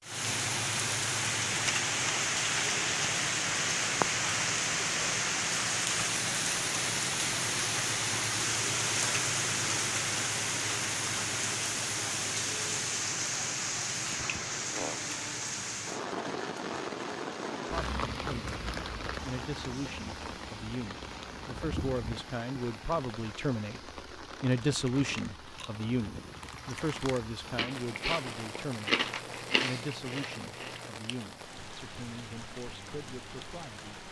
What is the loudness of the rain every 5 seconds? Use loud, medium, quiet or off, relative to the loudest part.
loud, loud, loud, medium, quiet, quiet, quiet.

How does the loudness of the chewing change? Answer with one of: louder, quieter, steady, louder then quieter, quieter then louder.
louder.